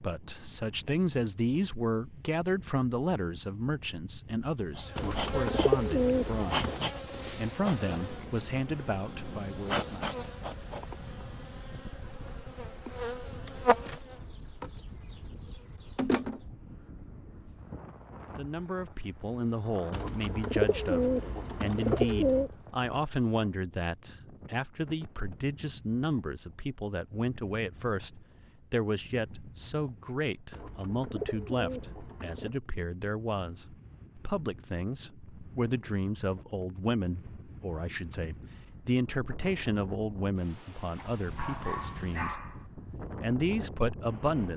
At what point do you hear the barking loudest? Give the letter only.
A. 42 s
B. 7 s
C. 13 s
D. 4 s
A.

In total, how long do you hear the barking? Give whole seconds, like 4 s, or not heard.
2 s.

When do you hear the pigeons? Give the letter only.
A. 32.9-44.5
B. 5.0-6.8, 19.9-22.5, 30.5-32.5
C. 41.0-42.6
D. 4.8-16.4
B.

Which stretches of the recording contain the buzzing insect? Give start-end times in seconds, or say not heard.
4.8-16.4.